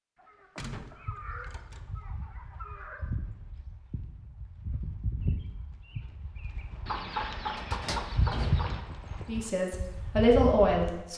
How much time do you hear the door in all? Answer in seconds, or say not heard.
3 s.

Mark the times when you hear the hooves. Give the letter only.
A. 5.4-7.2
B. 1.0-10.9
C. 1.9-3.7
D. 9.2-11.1
B.